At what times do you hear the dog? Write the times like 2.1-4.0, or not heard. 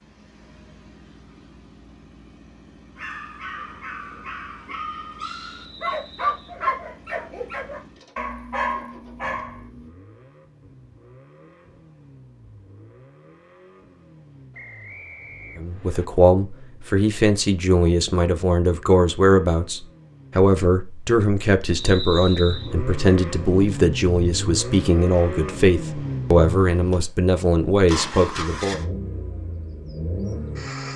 3.0-9.9.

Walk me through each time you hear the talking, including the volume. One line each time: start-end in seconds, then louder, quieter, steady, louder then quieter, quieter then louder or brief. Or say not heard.
15.6-28.8 steady.